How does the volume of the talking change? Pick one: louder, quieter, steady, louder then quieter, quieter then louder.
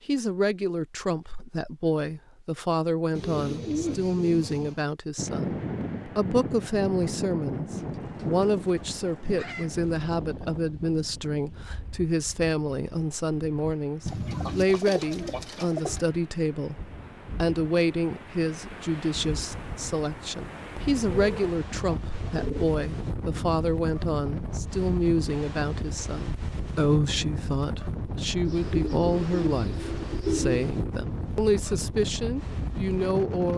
steady.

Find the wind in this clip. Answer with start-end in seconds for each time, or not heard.
5.2-33.5.